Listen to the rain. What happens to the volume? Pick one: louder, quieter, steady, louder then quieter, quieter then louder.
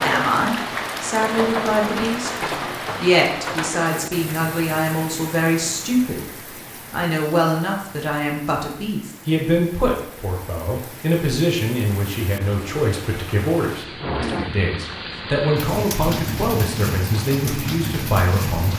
quieter then louder.